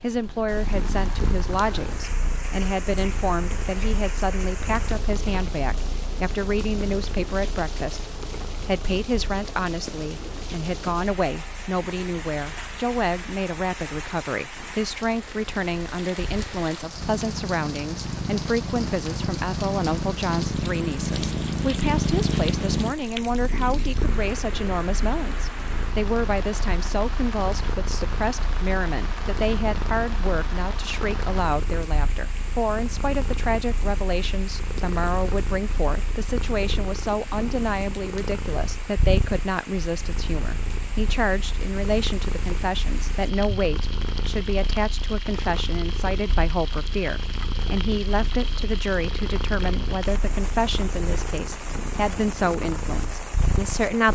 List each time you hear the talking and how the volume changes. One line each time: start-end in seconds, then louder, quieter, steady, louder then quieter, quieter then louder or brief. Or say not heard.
0.0-54.1 steady.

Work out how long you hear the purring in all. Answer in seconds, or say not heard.
54 s.